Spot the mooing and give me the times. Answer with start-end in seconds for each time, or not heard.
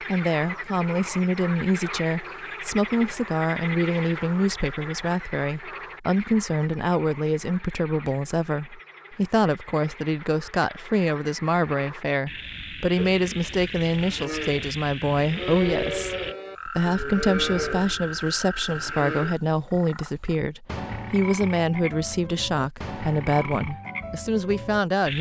12.9-19.4.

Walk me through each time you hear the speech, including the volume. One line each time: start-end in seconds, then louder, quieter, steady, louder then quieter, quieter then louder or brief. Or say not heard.
0.0-25.1 steady.